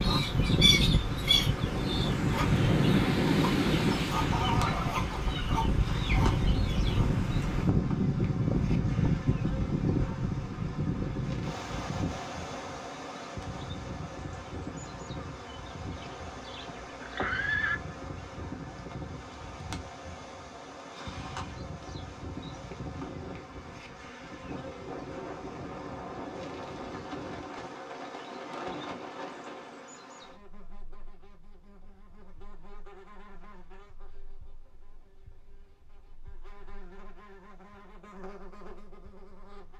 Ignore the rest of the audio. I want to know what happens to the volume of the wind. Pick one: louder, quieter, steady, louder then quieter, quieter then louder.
quieter.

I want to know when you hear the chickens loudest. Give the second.
1 s.